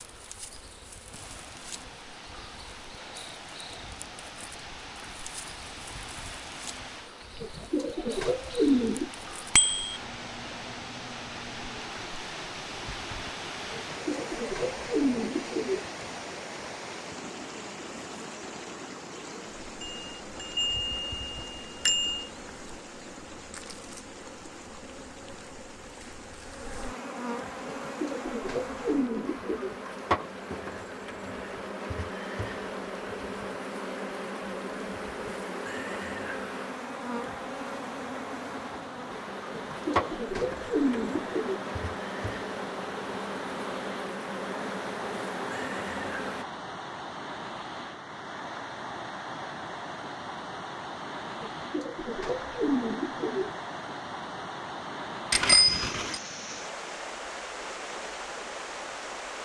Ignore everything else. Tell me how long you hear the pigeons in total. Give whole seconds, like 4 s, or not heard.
10 s.